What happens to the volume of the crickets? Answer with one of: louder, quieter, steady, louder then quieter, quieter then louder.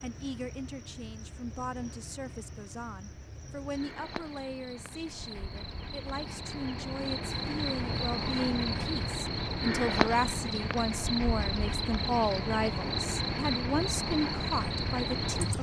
louder.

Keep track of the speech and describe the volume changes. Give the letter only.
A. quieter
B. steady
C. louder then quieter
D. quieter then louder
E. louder
E.